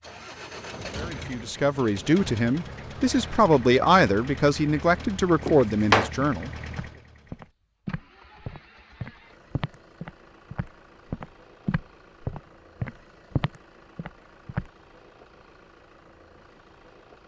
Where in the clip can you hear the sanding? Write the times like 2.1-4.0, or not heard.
not heard.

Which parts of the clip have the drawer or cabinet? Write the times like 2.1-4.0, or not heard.
5.5-6.1.